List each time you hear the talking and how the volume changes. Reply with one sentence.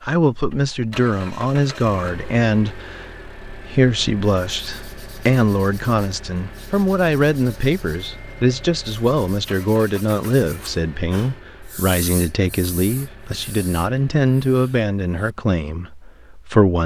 You can hear the talking from 0.0 to 16.8 s, at a steady volume.